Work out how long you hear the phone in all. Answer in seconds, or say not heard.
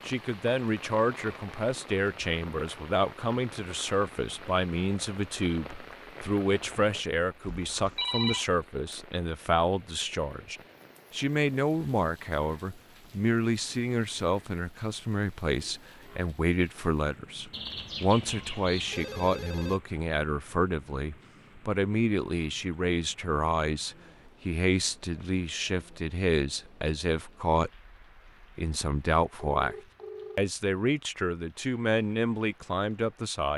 4 s.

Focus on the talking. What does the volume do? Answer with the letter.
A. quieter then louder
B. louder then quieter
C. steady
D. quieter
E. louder
C.